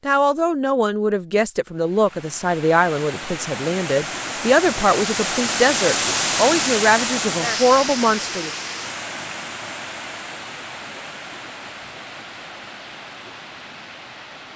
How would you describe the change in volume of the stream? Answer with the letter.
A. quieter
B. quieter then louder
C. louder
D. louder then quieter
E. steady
D.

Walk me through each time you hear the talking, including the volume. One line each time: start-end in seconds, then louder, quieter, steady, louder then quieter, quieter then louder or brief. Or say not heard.
0.1-8.5 steady.